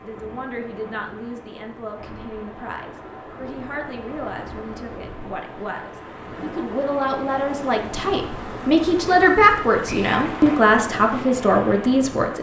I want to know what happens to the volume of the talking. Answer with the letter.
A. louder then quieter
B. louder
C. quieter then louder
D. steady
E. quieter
B.